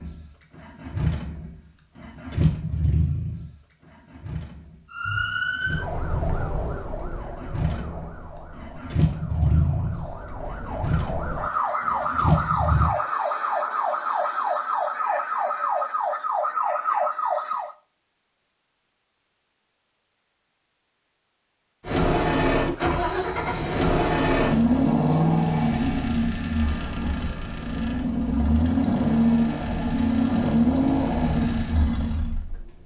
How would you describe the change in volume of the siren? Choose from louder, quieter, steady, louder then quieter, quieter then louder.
quieter then louder.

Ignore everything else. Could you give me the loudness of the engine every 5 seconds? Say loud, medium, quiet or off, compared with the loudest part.
medium, medium, medium, off, loud, loud, loud.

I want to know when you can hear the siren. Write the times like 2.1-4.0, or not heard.
4.9-17.8.